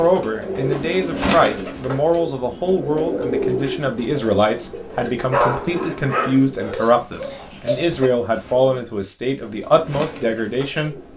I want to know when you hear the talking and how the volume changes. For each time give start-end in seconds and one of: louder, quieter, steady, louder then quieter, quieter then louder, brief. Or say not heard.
0.0-10.9 steady.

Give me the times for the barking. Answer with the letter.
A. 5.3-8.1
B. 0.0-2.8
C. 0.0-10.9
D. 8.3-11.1
A.